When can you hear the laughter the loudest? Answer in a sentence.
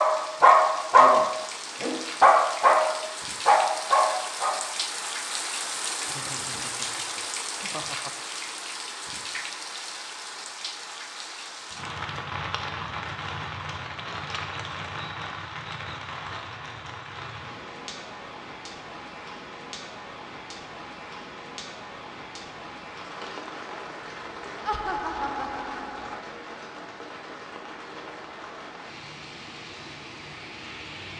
The volume of the laughter peaks at 25 seconds.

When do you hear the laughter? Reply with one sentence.
You can hear the laughter from 6.0 to 8.1 s and from 24.6 to 26.2 s.